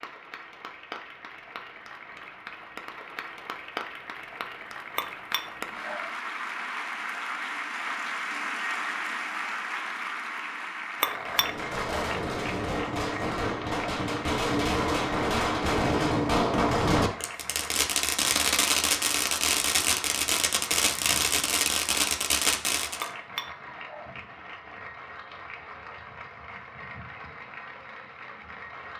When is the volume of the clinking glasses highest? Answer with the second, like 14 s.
11 s.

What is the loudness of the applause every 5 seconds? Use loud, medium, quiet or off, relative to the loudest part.
medium, loud, loud, medium, medium, medium.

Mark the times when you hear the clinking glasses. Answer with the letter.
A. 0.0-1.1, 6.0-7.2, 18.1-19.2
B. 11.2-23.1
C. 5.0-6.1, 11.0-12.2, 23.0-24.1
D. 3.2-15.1
C.